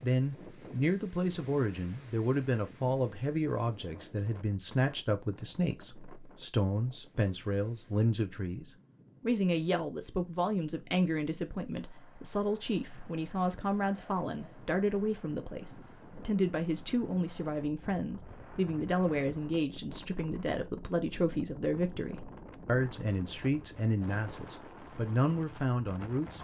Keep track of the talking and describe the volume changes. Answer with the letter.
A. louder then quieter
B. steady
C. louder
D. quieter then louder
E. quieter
B.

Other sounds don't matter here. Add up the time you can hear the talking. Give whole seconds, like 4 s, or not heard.
26 s.